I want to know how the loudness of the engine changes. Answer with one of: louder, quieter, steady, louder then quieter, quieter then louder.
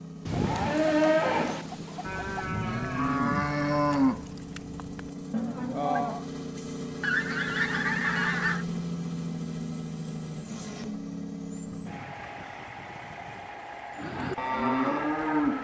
louder then quieter.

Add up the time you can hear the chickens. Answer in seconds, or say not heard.
6 s.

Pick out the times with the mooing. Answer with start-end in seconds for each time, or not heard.
0.3-6.3, 13.9-15.5.